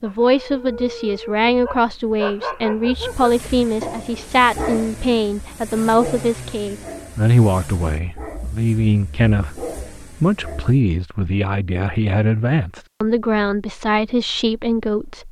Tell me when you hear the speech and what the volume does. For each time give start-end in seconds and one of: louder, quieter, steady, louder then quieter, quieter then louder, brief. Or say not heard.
0.0-15.2 steady.